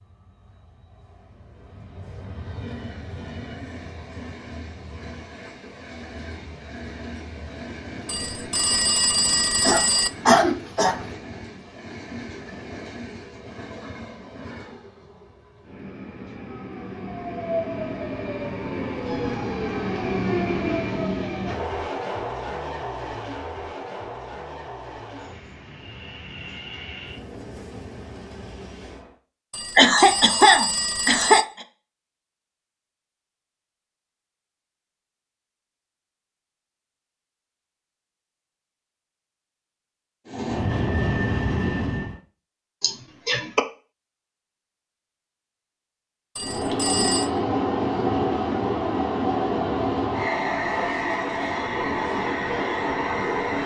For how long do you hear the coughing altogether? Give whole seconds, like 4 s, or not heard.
4 s.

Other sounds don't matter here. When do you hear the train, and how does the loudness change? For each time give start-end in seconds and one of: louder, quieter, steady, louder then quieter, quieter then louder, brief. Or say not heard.
0.0-29.1 louder then quieter
40.2-42.2 brief
46.4-53.6 steady.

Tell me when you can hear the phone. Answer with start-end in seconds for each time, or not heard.
8.1-10.1, 29.5-31.4, 46.4-47.3.